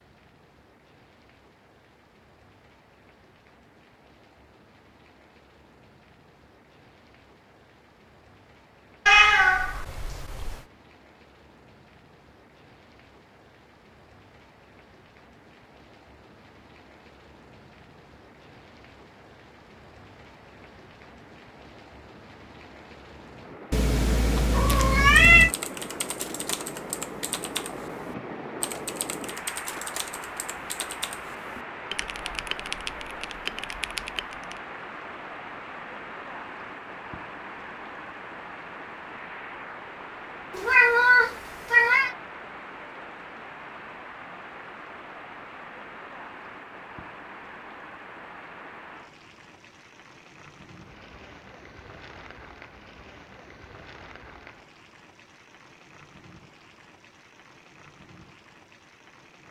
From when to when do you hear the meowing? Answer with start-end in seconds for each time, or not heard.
9.1-10.6, 23.7-25.5, 40.5-42.1.